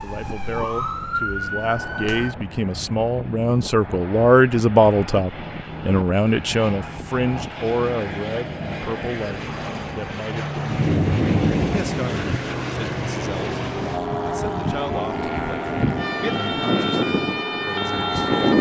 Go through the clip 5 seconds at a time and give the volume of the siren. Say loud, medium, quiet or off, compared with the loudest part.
loud, off, off, loud.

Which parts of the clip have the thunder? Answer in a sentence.
The thunder can be heard from 10.7 to 12.4 s.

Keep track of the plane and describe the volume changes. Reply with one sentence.
The loudness of the plane goes up.